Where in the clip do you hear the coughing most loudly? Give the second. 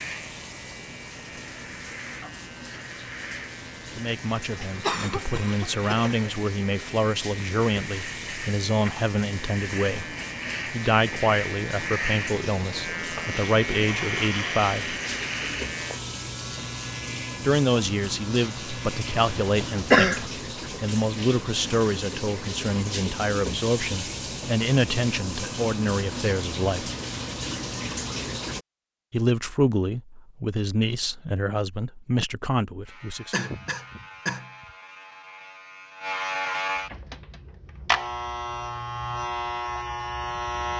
20 s.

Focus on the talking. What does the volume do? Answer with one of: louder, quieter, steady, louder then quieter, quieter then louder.
steady.